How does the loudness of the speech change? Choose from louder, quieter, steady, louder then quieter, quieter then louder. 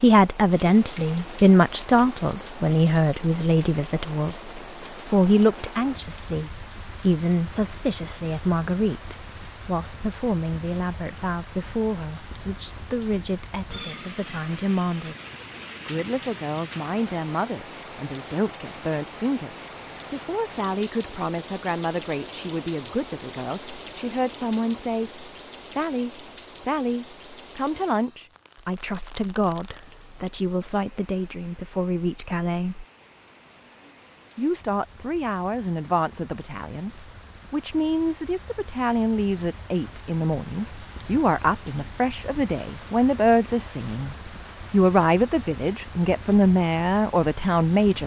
quieter then louder.